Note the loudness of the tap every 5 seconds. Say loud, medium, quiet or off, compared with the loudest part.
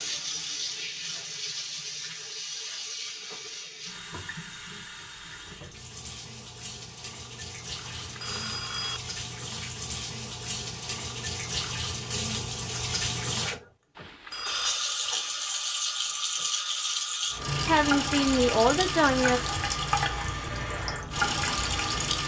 medium, medium, loud, loud, loud.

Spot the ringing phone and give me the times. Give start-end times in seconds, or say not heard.
7.8-9.0, 13.9-14.8.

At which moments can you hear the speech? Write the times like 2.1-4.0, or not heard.
17.6-19.4.